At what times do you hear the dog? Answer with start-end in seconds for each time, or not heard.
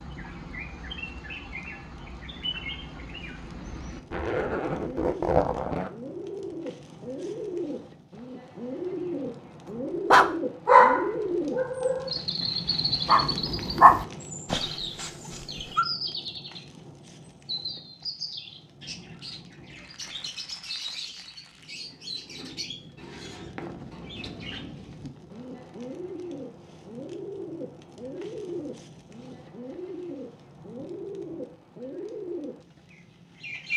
10.1-15.1.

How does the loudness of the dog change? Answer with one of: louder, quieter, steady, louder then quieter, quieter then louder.
quieter then louder.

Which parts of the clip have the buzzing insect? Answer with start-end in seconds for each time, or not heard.
not heard.